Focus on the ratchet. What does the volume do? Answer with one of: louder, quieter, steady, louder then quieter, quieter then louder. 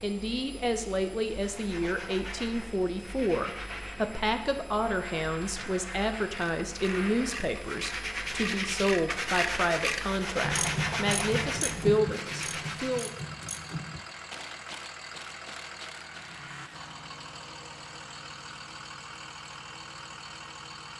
louder then quieter.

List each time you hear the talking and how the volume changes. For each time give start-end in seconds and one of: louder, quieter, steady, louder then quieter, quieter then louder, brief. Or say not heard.
0.0-13.1 steady.